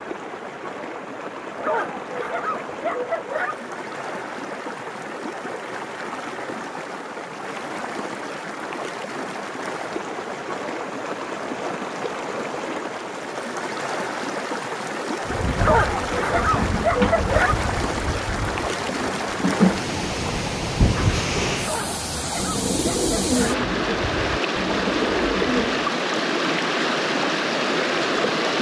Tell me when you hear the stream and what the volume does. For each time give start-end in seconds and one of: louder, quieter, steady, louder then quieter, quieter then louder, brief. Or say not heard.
0.0-28.5 louder.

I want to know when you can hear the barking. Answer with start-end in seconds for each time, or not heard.
1.6-3.5, 15.6-17.6, 21.6-23.6.